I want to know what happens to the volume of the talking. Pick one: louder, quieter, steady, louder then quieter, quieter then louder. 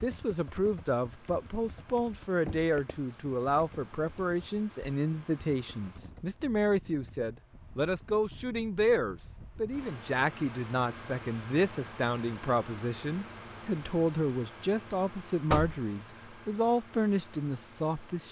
steady.